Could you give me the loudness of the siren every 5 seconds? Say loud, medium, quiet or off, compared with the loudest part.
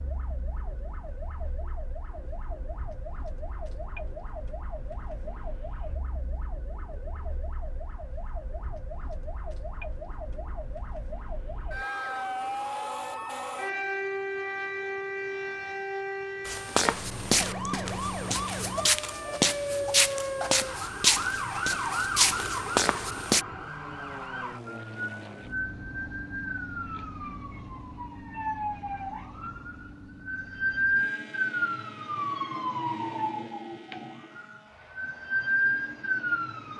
quiet, quiet, medium, medium, medium, medium, loud, loud.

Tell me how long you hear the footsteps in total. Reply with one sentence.
You can hear the footsteps for 7 seconds altogether.